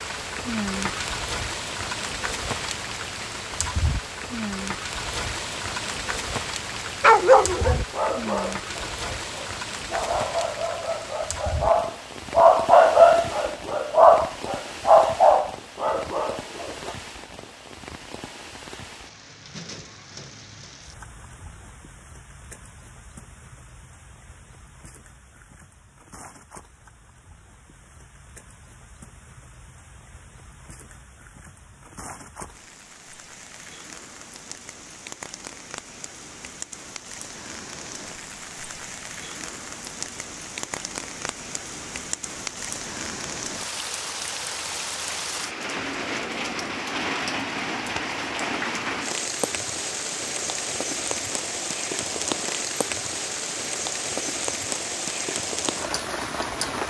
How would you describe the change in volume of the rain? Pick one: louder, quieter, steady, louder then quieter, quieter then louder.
quieter then louder.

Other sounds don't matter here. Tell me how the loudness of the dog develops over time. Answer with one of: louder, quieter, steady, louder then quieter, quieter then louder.
louder.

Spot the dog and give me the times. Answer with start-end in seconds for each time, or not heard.
7.0-16.9.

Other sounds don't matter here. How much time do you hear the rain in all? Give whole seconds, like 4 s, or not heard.
57 s.